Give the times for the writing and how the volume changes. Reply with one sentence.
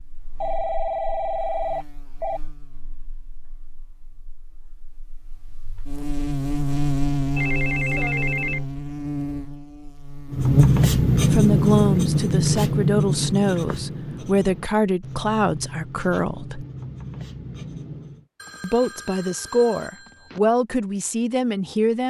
The writing can be heard from 10.3 to 18.2 s, getting quieter.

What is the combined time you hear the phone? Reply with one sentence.
You can hear the phone for 5 seconds altogether.